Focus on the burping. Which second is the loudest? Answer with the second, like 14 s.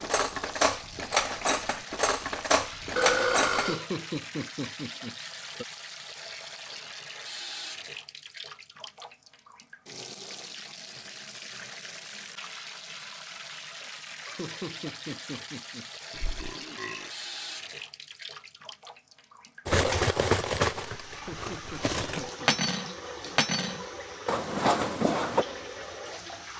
3 s.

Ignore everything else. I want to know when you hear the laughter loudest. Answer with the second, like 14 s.
4 s.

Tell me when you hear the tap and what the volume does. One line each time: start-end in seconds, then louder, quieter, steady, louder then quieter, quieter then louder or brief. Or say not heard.
0.0-26.5 steady.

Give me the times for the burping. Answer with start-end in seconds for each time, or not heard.
3.0-3.9, 16.1-17.1.